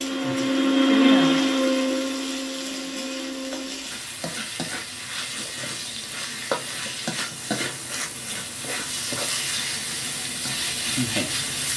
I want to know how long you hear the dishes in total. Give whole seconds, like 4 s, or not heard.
not heard.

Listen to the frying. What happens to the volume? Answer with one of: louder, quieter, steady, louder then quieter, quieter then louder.
louder.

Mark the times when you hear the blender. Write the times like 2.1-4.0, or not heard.
0.0-4.0.